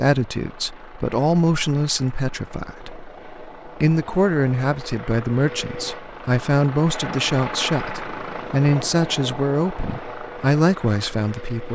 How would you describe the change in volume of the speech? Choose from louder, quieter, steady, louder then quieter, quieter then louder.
steady.